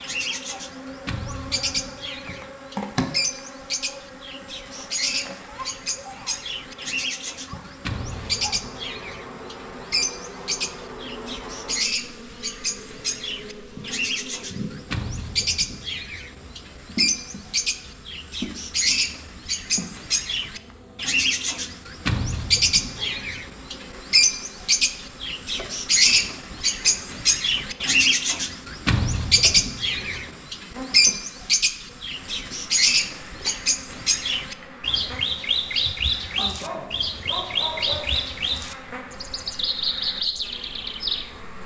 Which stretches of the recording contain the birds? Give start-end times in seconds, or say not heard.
0.0-41.5.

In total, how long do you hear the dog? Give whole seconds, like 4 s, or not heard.
2 s.